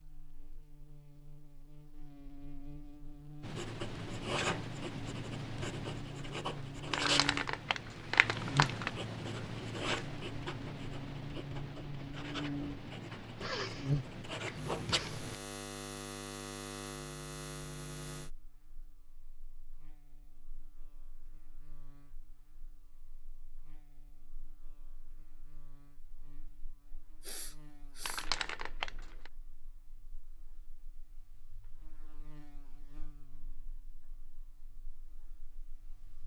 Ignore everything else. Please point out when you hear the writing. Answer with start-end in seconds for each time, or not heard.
3.4-15.3.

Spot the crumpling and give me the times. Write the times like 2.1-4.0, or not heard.
6.9-8.9, 28.1-29.3.